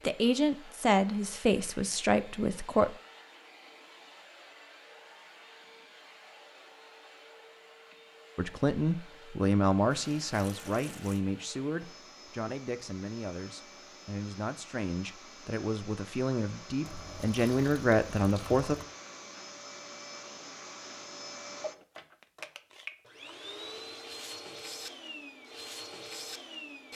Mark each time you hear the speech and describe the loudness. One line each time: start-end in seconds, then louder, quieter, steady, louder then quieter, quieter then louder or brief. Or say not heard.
0.1-3.0 brief
8.3-18.8 quieter then louder.